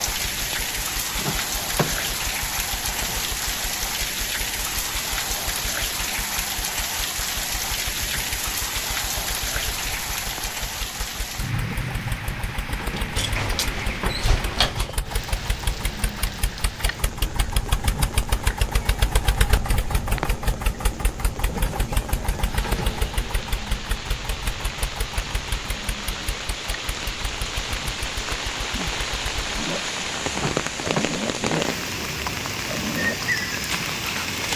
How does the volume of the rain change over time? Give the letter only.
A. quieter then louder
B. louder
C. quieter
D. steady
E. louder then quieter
A.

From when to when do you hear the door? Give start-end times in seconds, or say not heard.
1.1-2.1, 13.2-14.9, 30.4-31.1.